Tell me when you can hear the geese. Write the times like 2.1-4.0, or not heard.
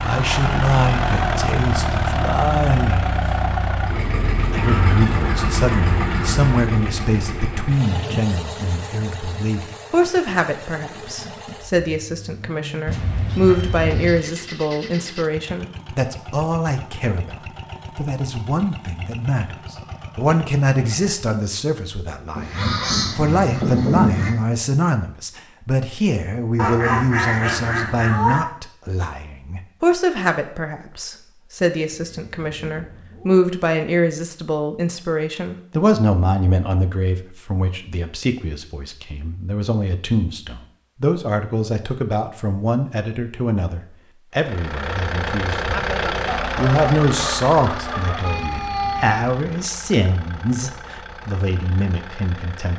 4.5-6.6, 22.4-24.3, 26.6-28.4, 46.2-48.3.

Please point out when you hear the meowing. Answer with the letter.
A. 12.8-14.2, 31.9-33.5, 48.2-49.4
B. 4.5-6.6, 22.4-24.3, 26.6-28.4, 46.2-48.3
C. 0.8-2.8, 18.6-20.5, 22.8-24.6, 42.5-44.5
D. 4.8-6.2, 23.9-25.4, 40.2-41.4
A.